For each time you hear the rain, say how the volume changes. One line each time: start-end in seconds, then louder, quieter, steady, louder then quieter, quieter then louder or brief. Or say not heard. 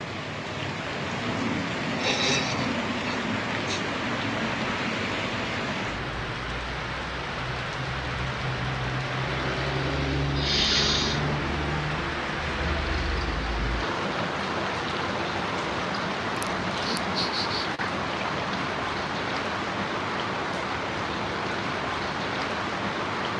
0.0-23.3 steady.